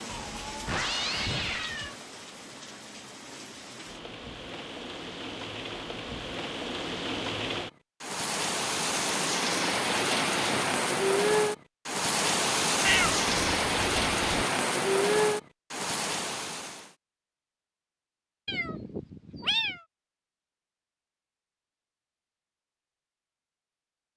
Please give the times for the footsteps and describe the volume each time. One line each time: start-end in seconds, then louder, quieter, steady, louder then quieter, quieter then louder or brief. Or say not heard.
not heard.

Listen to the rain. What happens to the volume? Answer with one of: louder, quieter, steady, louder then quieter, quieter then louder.
louder.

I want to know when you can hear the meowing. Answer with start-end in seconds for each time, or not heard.
0.1-1.9, 12.8-14.2, 18.4-19.8.